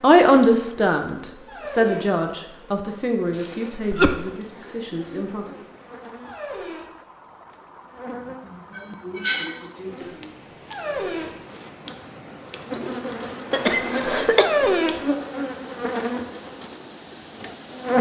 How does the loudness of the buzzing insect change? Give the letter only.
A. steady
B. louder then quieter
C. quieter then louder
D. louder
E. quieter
D.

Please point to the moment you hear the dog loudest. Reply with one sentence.
The volume of the dog peaks at 15 seconds.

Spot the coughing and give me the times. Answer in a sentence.
The coughing can be heard from 3.3 to 4.2 s, from 8.4 to 10.2 s and from 13.5 to 14.4 s.